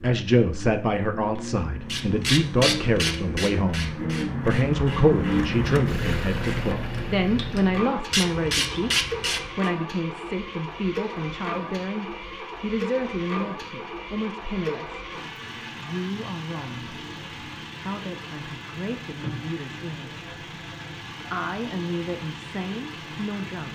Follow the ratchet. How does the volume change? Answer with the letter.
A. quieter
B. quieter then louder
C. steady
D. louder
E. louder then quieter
B.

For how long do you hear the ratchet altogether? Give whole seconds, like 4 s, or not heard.
8 s.